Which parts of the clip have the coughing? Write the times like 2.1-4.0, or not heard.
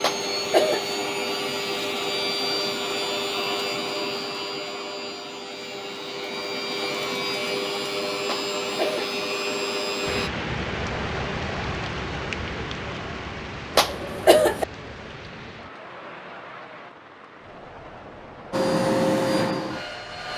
0.0-0.8, 8.2-9.1, 13.8-14.7.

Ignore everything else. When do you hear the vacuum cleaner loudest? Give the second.
19 s.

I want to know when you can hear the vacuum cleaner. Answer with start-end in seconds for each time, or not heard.
0.0-10.3, 18.5-20.3.